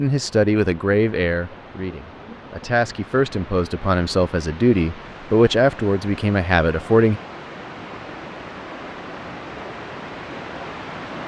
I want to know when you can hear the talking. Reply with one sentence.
The talking can be heard from 0.0 to 7.2 s.